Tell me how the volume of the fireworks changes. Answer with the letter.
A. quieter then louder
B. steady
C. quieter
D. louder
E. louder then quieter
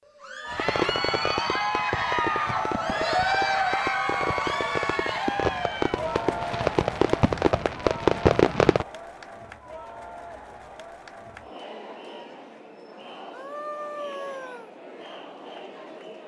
D.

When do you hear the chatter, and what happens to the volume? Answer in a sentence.
You can hear the chatter from 0.1 to 16.2 s, getting quieter.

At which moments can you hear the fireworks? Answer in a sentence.
The fireworks can be heard from 0.5 to 8.8 s.